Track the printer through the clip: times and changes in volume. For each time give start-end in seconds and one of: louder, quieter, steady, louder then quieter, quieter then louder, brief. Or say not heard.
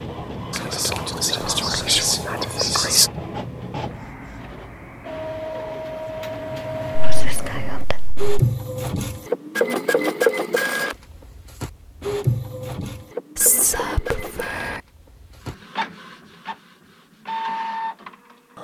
0.0-18.5 louder then quieter.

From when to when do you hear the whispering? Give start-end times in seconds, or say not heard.
0.5-3.1, 7.0-8.3, 13.3-14.8.